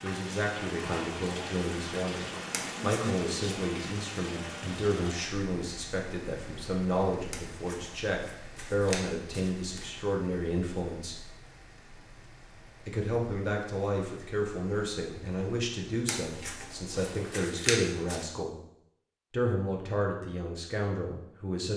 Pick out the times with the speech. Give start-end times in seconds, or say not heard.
0.0-11.3, 12.8-18.6, 19.3-21.7.